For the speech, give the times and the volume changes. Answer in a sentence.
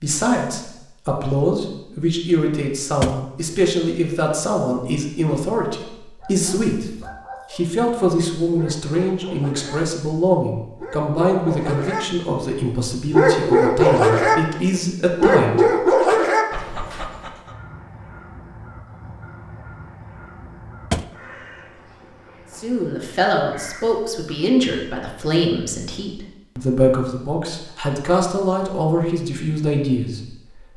You can hear the speech from 0.0 to 16.1 s, at a steady volume; and from 22.5 to 30.6 s, at a steady volume.